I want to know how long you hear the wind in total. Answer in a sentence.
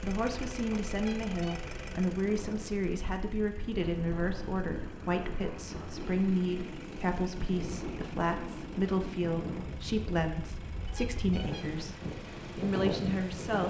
The wind can be heard for 13 seconds in total.